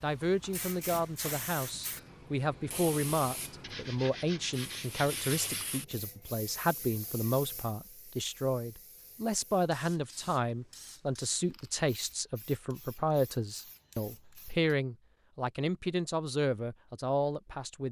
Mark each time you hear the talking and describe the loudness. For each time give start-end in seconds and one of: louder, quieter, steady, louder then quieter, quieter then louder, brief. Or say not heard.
0.0-17.8 steady.